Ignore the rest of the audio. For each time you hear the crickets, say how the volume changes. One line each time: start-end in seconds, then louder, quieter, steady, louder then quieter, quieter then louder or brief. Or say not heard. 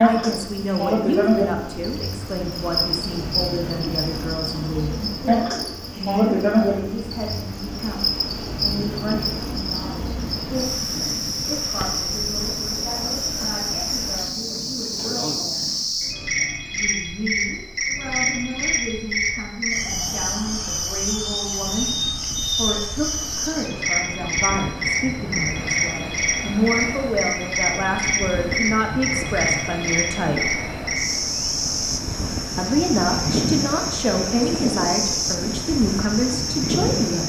0.0-37.2 steady.